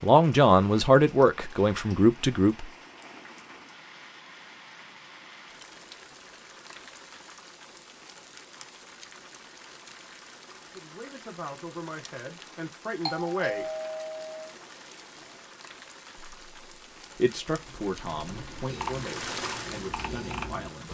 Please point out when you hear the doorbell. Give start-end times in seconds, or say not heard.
13.1-14.6.